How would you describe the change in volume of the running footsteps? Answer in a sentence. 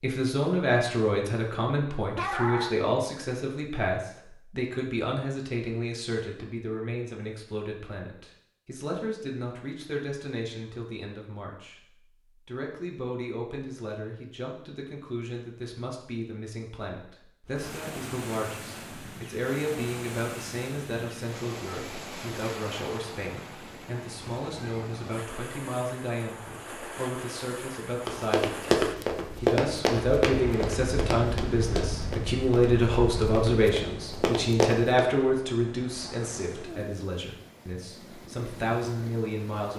The loudness of the running footsteps goes down, then up.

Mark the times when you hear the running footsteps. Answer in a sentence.
The running footsteps can be heard from 28.1 to 35.0 s.